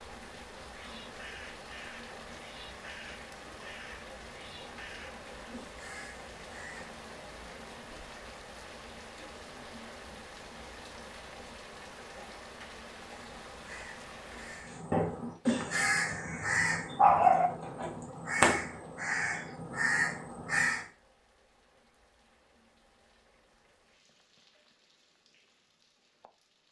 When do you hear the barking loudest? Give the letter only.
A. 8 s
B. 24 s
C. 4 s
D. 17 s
D.